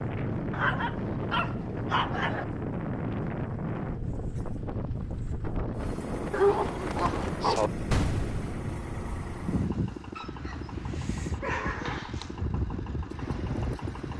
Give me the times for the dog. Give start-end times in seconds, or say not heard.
0.5-2.5, 6.3-7.7, 10.2-12.4.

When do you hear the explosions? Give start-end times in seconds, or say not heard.
7.9-8.5.